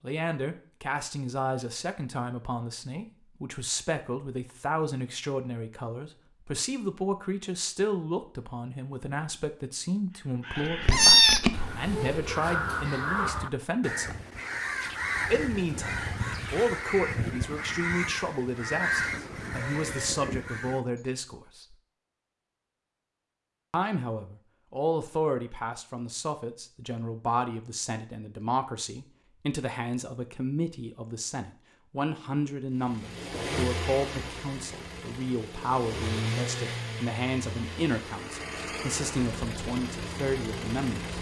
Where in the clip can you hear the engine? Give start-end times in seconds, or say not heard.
32.8-41.1.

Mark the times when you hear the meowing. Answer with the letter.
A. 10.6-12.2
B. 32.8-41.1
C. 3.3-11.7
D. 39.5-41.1
A.